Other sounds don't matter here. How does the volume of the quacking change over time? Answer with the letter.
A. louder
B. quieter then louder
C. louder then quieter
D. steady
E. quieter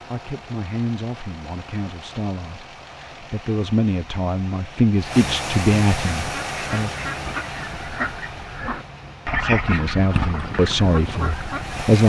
C.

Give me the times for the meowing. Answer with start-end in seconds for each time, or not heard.
not heard.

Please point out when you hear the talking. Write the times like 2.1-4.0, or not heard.
0.1-6.9, 9.4-12.0.